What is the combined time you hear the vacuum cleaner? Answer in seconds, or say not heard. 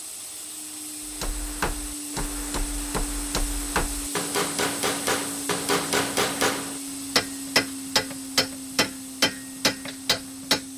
11 s.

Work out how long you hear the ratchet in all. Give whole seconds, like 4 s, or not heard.
not heard.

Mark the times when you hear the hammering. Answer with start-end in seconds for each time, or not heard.
1.1-10.7.